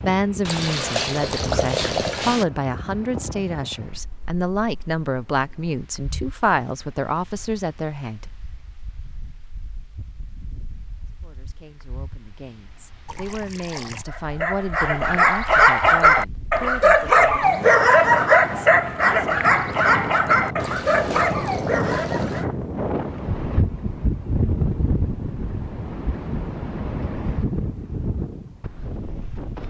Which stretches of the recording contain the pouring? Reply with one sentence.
The pouring can be heard from 0.5 to 2.5 s, from 13.1 to 14.1 s and from 20.6 to 22.4 s.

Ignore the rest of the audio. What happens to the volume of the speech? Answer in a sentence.
The loudness of the speech goes down.